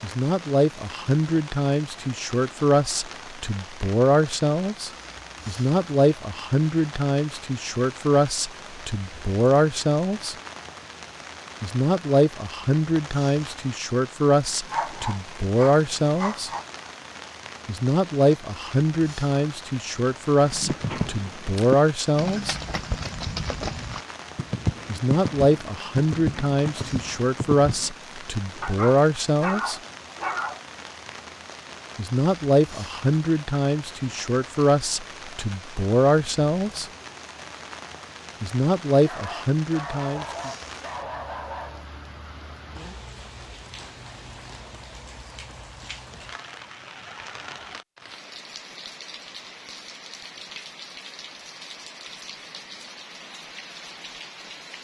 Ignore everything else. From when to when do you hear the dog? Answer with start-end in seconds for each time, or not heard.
14.7-16.6, 28.6-30.6, 39.0-41.9.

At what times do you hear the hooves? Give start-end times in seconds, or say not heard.
20.4-27.9.